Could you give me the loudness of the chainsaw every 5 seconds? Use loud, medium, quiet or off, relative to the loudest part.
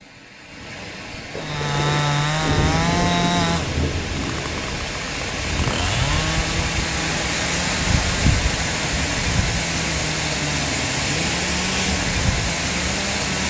loud, medium, medium.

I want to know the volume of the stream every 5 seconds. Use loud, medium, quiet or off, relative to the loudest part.
medium, loud, loud.